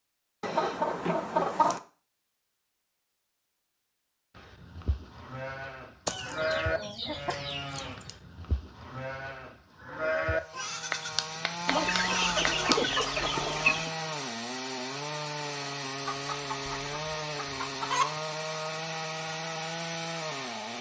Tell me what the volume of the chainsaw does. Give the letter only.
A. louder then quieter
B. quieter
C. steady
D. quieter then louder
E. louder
C.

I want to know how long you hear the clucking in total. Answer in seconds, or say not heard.
8 s.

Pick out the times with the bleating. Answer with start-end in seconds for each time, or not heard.
4.3-12.9.